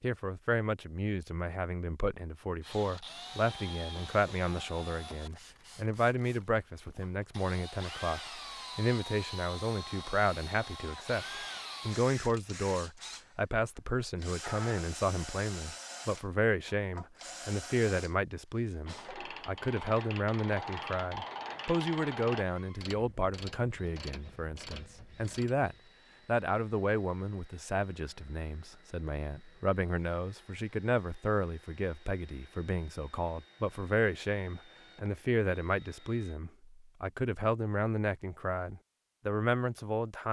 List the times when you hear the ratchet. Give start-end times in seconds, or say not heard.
18.9-25.8.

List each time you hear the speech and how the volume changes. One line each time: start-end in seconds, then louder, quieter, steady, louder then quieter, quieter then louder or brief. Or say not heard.
0.0-40.2 steady.